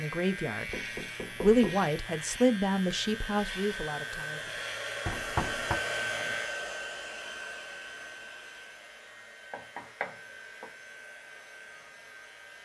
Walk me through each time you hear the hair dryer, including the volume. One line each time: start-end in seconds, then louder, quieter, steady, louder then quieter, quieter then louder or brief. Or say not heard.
0.1-12.6 louder then quieter.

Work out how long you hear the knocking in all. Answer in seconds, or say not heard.
3 s.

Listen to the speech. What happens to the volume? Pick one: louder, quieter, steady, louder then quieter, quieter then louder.
louder then quieter.